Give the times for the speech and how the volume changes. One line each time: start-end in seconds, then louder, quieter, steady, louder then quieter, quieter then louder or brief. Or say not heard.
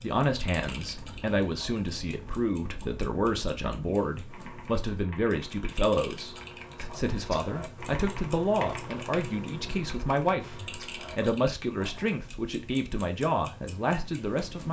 0.0-14.6 steady.